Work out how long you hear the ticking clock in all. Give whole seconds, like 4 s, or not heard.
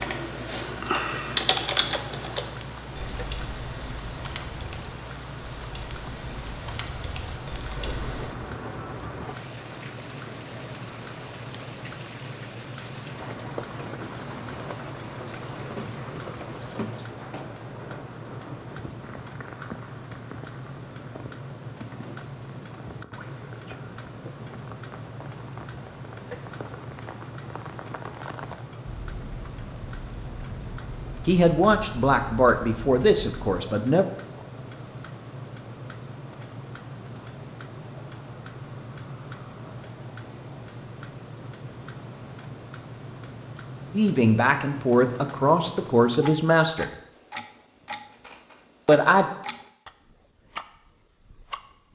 52 s.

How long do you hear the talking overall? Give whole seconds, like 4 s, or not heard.
6 s.